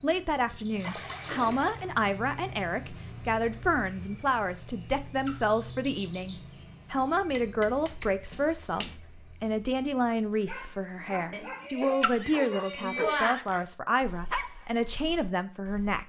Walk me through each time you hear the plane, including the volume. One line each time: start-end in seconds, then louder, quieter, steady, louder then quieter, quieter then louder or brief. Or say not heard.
not heard.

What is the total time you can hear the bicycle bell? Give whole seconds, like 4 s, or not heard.
4 s.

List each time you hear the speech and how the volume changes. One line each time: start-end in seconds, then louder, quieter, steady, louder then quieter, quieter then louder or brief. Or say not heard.
0.0-16.0 steady.